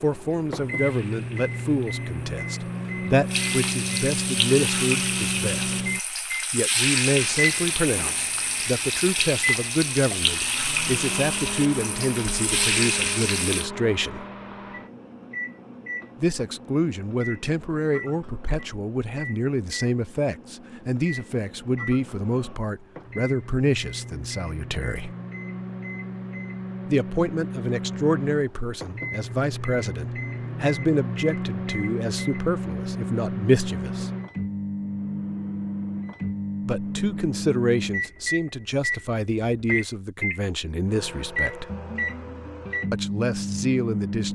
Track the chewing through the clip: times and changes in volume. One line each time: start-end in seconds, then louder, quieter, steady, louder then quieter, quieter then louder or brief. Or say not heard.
not heard.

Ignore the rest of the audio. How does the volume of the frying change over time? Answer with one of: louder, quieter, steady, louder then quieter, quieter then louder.
louder.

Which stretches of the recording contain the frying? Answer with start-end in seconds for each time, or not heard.
0.1-13.7.